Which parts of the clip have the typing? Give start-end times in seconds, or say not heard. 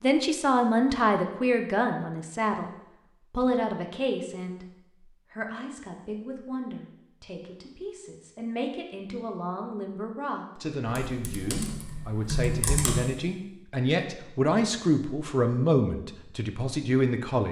10.8-12.9.